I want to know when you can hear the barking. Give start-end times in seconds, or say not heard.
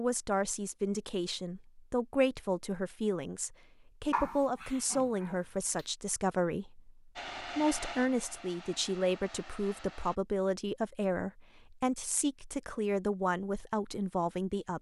4.1-5.8.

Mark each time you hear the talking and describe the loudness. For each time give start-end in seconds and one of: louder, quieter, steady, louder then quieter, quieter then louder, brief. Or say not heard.
0.0-14.7 steady.